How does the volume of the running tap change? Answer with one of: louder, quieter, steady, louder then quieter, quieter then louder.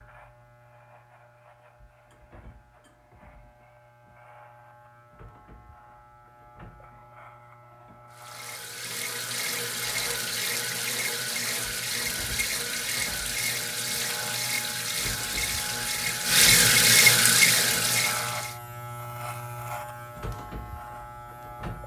louder.